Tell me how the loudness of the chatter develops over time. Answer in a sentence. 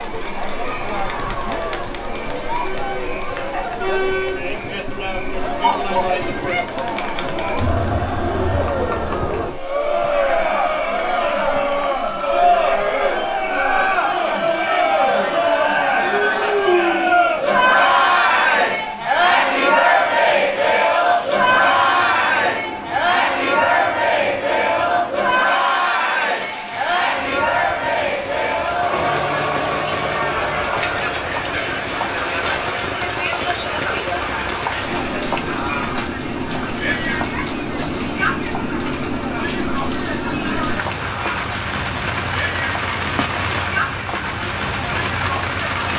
The volume of the chatter goes up, then down.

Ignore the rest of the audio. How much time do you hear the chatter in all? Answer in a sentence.
The chatter can be heard for 46 seconds in total.